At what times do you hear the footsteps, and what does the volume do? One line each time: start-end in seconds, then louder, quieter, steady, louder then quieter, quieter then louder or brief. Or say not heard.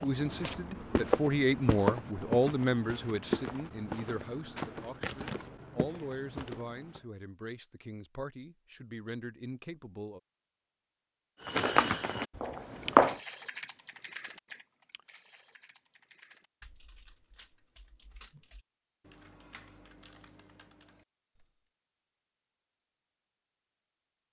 0.0-7.0 quieter
11.4-13.2 brief.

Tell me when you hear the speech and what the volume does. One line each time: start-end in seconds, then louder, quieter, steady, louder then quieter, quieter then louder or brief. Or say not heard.
0.0-10.2 quieter.